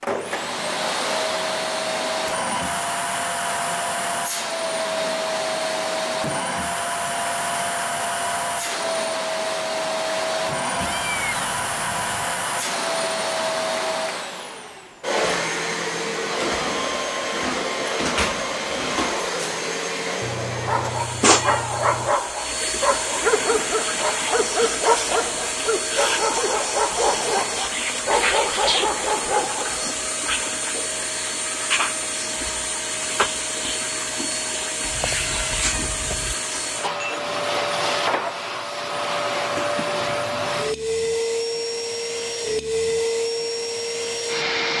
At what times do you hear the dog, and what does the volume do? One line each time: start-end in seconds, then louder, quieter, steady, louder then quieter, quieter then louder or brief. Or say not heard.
20.5-29.9 steady.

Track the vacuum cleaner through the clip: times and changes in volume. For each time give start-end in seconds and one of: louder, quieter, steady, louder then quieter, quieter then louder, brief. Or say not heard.
0.0-44.7 steady.